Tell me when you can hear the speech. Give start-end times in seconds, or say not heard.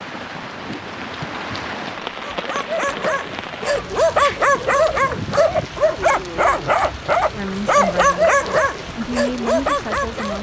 7.3-10.3.